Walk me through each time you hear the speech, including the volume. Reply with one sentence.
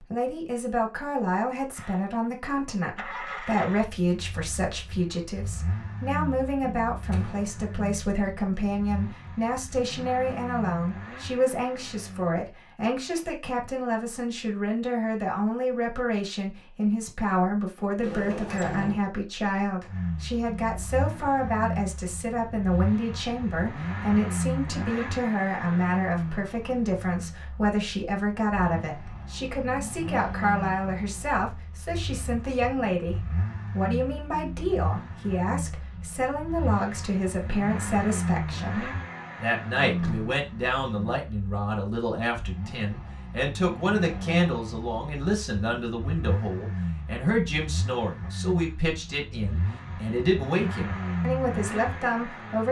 You can hear the speech from 0.0 to 52.6 s, at a steady volume.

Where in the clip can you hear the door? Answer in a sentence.
You can hear the door from 7.1 to 7.5 s, from 18.0 to 19.1 s and from 39.8 to 40.4 s.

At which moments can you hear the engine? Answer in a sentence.
You can hear the engine from 1.8 to 12.4 s and from 19.9 to 52.6 s.